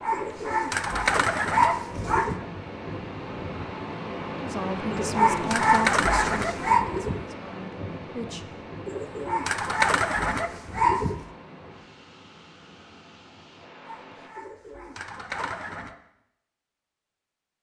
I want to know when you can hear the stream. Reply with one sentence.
The stream can be heard from 0.0 to 14.3 s.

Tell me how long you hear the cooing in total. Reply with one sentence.
You can hear the cooing for 9 seconds altogether.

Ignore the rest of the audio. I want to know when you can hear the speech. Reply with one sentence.
The speech can be heard from 4.4 to 8.5 s.